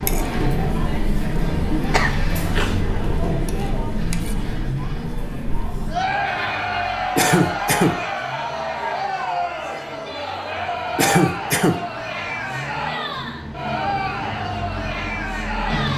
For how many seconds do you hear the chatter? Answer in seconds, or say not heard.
16 s.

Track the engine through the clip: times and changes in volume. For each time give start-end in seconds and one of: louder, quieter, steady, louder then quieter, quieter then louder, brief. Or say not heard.
0.0-15.9 quieter then louder.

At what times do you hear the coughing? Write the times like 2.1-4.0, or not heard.
1.9-2.8, 7.2-8.0, 10.9-11.8.